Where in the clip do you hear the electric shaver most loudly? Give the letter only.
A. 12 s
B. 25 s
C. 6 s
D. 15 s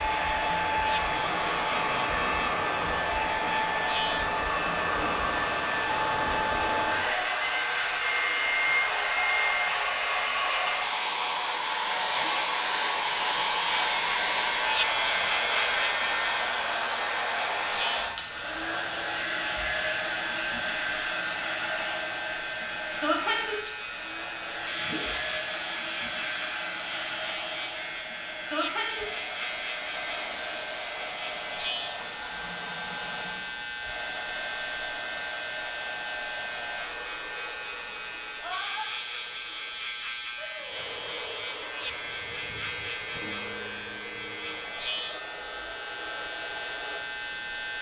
D.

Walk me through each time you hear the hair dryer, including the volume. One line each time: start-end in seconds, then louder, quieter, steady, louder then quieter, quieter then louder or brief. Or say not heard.
0.0-47.7 quieter.